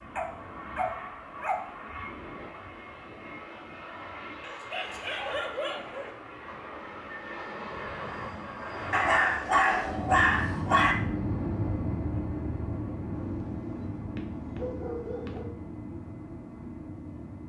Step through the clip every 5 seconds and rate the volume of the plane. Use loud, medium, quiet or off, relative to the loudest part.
medium, medium, loud, medium.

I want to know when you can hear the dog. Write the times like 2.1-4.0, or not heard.
0.1-1.7, 4.4-6.1, 8.9-10.9, 13.1-15.5.